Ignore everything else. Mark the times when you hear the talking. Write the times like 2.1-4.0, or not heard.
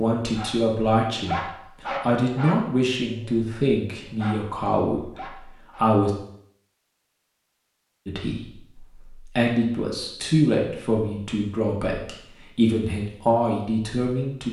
0.0-6.1, 8.1-14.4.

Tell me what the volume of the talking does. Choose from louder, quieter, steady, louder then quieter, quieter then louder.
steady.